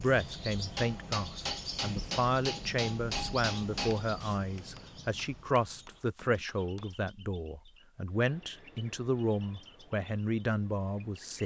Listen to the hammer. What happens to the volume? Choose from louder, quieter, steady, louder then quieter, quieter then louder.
quieter.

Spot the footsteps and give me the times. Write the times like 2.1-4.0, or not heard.
not heard.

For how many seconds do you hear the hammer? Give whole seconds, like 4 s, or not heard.
6 s.